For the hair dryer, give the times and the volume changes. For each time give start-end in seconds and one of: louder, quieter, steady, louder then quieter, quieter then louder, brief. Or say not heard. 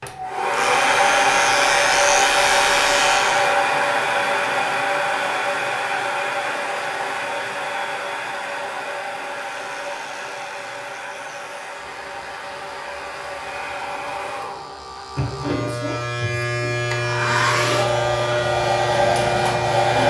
0.0-20.0 quieter then louder.